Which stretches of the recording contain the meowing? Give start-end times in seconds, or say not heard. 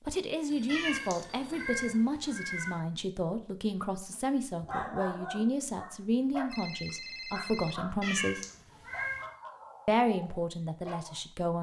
0.7-2.8, 8.0-9.3.